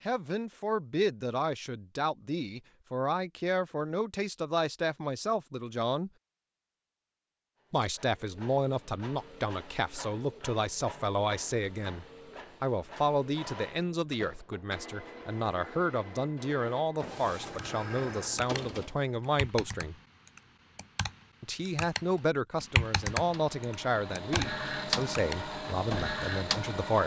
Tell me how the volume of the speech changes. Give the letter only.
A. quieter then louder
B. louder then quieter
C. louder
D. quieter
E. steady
E.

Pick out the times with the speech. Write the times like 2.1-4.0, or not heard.
0.1-6.1, 7.7-19.9, 21.4-27.0.